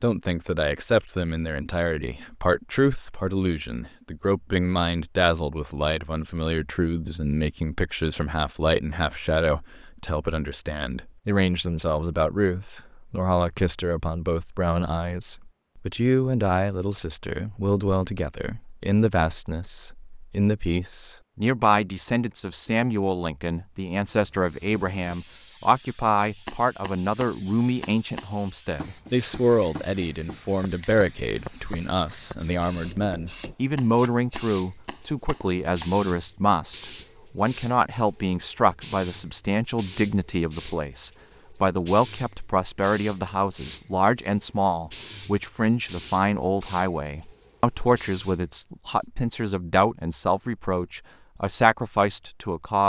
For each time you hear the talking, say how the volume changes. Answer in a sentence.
The talking can be heard from 0.0 to 52.8 s, at a steady volume.